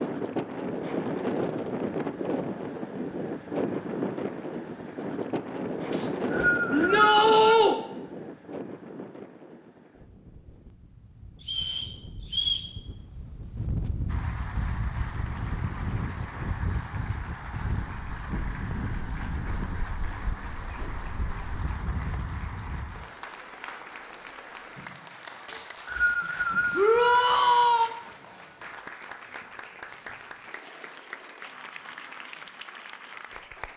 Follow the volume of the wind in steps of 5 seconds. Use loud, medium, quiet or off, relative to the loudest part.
loud, loud, medium, medium, medium, off, off.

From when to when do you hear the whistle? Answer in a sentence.
You can hear the whistle from 5.9 to 7.5 s, from 11.4 to 12.7 s and from 25.4 to 27.3 s.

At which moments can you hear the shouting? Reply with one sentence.
The shouting can be heard from 6.7 to 7.8 s and from 26.8 to 27.9 s.